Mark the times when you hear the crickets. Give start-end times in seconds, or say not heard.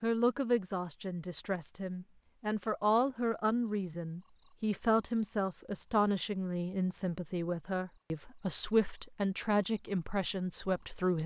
3.4-11.2.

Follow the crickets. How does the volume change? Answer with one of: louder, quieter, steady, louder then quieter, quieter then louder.
quieter then louder.